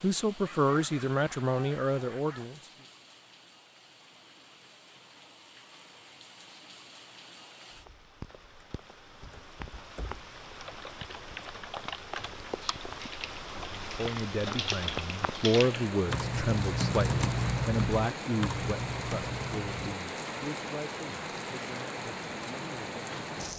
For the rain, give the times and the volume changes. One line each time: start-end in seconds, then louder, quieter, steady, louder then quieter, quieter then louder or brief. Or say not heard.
0.0-23.5 louder.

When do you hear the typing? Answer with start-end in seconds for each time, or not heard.
9.2-19.9.